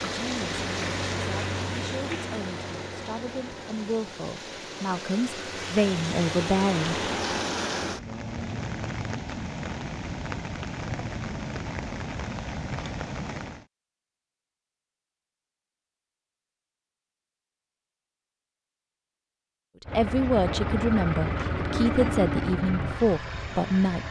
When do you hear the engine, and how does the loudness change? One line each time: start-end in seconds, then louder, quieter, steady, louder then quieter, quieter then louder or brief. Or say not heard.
0.0-8.1 quieter then louder
19.9-24.0 quieter.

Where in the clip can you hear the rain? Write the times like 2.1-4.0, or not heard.
0.0-13.7.